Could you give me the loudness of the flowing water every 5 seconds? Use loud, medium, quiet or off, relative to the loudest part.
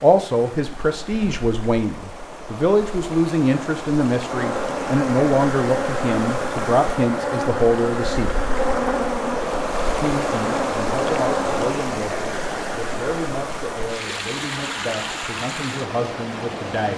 medium, loud, loud, loud.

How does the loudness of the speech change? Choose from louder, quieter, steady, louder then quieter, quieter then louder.
quieter.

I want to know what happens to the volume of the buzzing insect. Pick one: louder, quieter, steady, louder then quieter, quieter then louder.
steady.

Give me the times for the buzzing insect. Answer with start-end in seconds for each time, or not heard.
4.3-11.8.